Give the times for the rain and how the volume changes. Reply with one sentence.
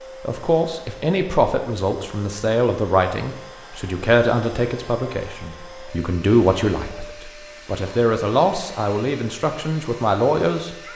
You can't hear the rain here.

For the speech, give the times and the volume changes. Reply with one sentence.
You can hear the speech from 0.2 to 10.8 s, at a steady volume.